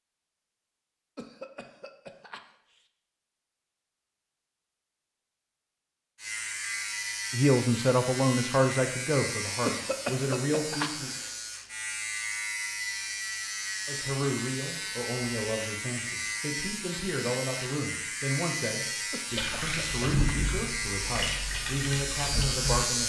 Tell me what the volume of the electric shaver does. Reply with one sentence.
The loudness of the electric shaver stays about the same.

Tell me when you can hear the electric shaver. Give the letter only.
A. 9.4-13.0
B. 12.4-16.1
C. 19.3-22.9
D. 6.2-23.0
D.